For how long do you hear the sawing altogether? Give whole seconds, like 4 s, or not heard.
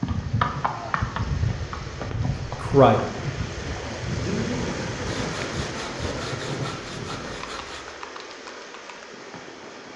3 s.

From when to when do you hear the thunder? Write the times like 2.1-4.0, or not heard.
4.2-7.5.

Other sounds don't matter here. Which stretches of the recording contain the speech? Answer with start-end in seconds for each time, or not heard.
2.5-4.7.